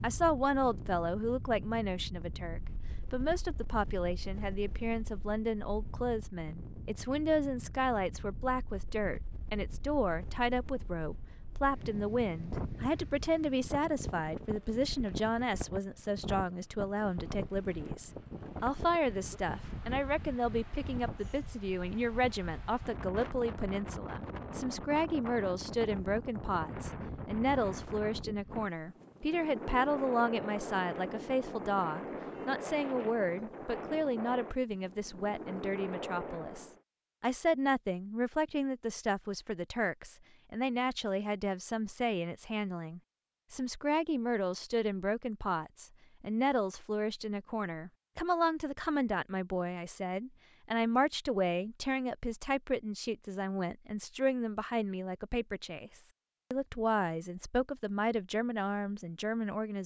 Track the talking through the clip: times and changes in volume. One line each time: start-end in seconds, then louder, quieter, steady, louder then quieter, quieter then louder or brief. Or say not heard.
0.0-59.8 steady.